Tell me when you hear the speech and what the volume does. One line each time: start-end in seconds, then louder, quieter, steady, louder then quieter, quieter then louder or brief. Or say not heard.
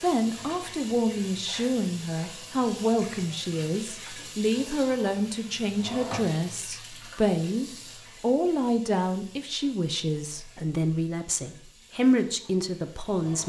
0.0-13.4 steady.